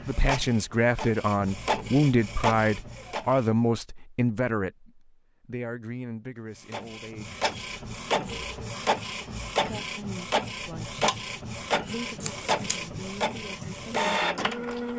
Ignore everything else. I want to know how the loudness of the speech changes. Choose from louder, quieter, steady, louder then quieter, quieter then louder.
quieter.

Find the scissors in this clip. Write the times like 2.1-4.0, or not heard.
12.2-12.8.